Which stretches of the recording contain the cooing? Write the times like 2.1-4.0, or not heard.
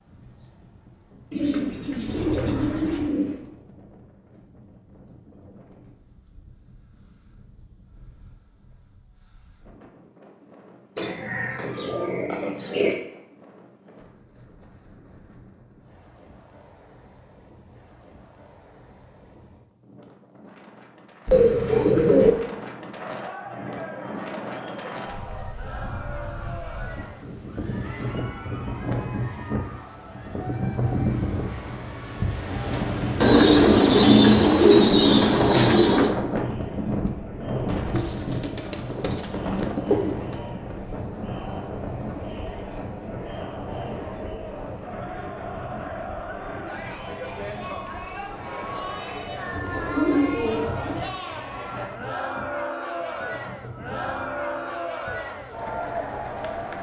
1.3-3.4, 10.9-12.9, 21.2-22.4, 33.2-36.1, 37.9-40.1, 49.5-51.1.